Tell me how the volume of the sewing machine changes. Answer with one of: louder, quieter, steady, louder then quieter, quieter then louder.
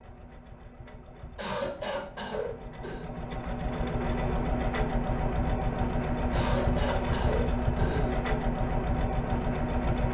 louder.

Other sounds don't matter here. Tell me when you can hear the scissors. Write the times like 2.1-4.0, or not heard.
not heard.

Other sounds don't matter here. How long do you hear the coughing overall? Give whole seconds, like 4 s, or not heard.
4 s.